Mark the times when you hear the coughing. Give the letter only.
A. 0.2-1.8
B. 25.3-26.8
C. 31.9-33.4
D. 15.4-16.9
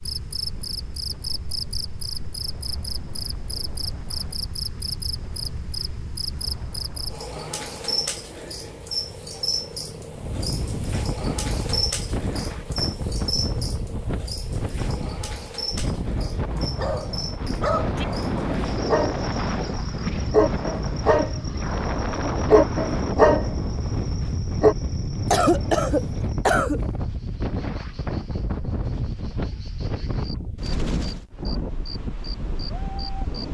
B.